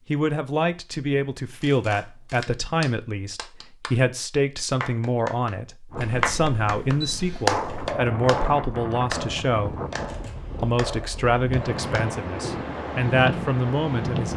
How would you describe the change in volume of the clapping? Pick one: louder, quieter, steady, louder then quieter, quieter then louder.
louder then quieter.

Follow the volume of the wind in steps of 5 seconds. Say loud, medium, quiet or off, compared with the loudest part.
off, loud, loud.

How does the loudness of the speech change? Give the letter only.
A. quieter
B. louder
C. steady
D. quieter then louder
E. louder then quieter
C.